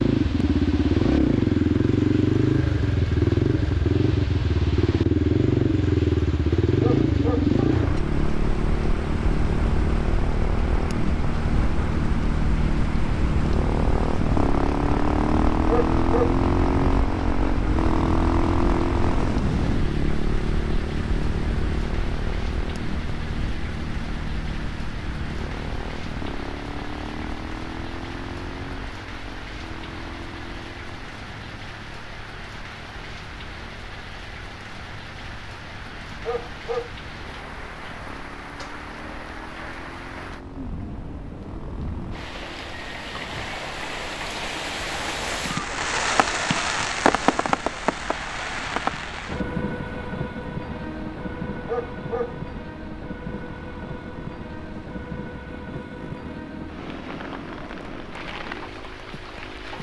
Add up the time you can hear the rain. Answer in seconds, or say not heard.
60 s.